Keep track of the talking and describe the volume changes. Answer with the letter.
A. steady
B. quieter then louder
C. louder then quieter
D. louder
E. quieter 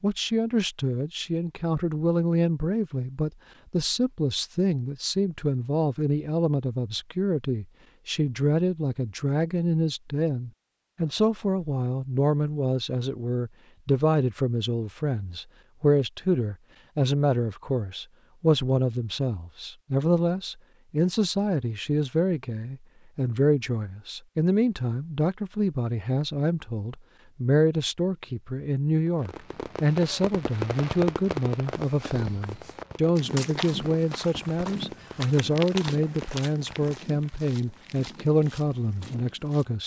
A.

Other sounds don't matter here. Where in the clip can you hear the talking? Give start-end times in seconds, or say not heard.
0.0-39.8.